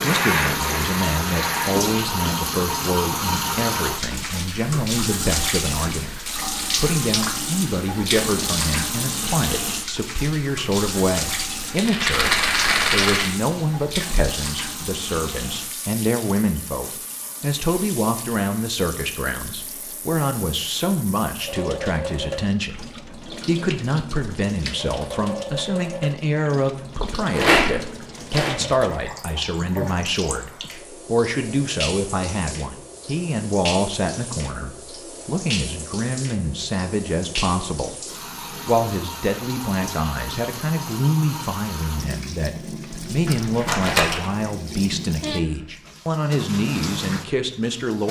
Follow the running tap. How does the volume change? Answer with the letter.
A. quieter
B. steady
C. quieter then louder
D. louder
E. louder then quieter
A.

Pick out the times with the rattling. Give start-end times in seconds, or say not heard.
11.8-13.3, 27.3-28.6, 43.0-44.2.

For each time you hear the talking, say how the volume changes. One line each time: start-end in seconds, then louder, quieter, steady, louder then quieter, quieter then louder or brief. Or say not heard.
0.0-38.0 steady
38.6-48.0 steady.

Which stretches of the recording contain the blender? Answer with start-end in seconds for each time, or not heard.
0.0-1.8.